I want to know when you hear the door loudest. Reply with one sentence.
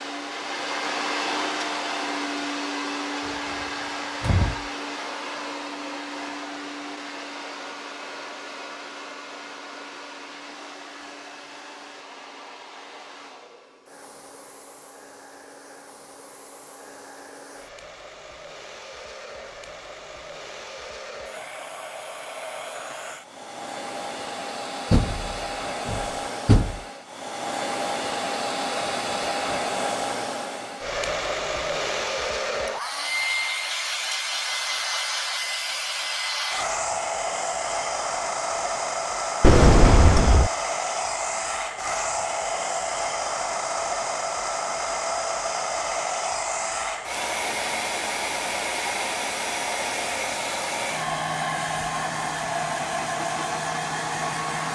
The loudest moment of the door is at 40 seconds.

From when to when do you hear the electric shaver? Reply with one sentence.
The electric shaver can't be heard in this clip.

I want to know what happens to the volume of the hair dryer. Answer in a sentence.
The volume of the hair dryer goes down, then up.